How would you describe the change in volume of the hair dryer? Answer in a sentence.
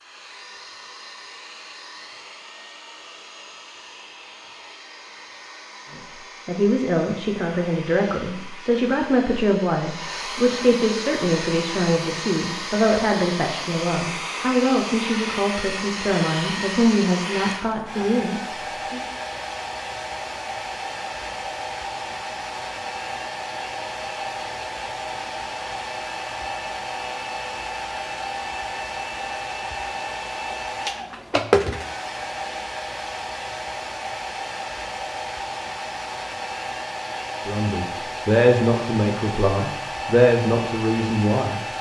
The loudness of the hair dryer goes up.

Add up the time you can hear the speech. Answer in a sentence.
You can hear the speech for 17 seconds altogether.